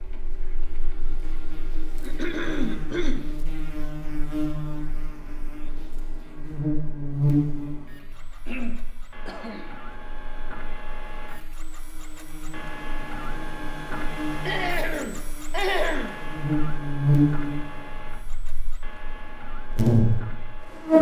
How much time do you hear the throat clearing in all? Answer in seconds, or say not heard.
5 s.